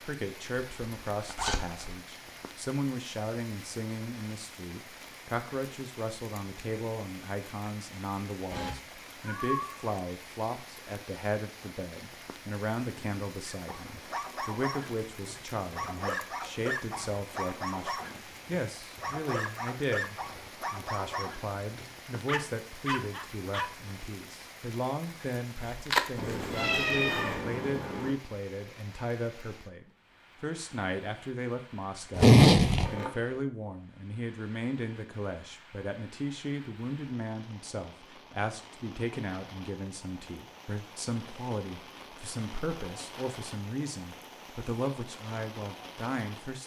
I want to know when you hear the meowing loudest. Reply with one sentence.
The volume of the meowing peaks at 27 seconds.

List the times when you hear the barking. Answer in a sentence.
The barking can be heard from 13.4 to 23.7 s.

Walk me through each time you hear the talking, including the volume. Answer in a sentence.
You can hear the talking from 0.0 to 46.6 s, at a steady volume.